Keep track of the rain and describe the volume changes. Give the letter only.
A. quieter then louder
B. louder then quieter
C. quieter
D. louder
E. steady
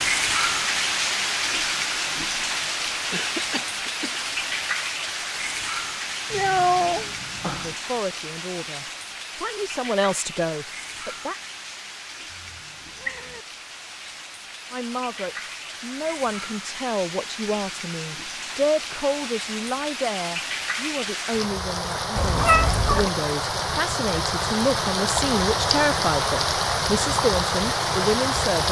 A.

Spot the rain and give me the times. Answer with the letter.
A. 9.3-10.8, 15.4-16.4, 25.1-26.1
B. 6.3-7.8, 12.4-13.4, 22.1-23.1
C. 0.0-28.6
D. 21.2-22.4
C.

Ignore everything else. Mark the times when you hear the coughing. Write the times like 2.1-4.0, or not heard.
3.1-4.3.